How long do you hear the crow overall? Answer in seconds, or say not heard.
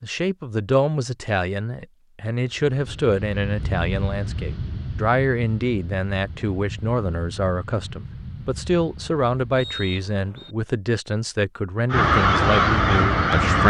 2 s.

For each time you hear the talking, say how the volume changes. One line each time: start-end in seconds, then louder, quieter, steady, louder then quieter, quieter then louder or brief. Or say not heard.
0.0-13.6 steady.